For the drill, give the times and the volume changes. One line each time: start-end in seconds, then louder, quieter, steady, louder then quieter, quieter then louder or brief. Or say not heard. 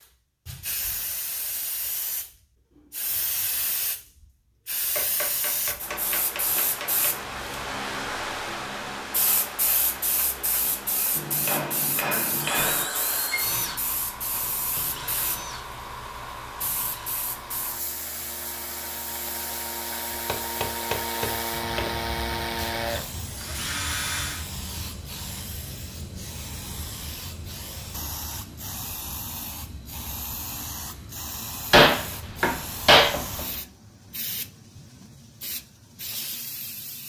12.2-24.5 quieter then louder.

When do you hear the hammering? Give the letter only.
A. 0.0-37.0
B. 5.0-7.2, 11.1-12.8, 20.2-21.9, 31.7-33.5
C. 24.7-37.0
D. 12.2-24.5
B.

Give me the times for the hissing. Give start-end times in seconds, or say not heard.
0.0-37.0.